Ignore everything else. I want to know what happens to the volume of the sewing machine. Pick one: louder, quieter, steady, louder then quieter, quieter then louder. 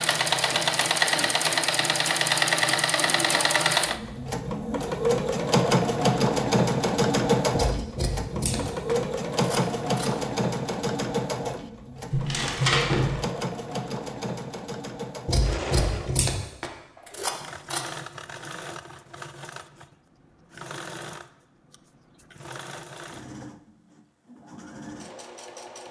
quieter.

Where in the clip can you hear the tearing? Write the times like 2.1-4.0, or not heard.
12.1-13.2.